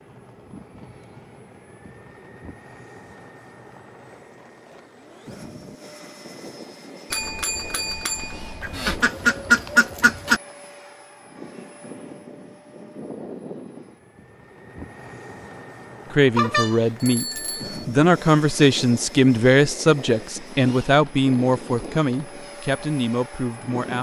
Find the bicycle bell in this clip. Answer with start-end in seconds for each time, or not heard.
7.1-9.1, 16.4-17.9.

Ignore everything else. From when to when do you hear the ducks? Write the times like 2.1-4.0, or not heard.
8.6-10.4.